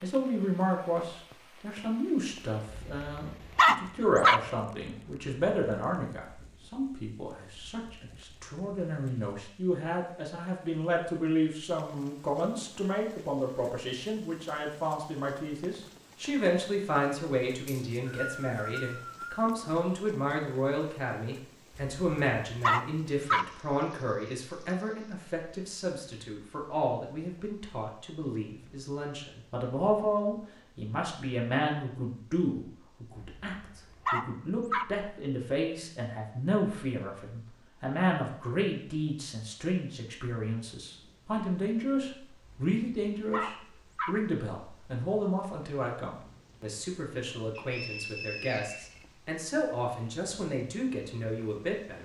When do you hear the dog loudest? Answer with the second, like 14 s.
4 s.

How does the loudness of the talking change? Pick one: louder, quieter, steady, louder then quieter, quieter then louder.
steady.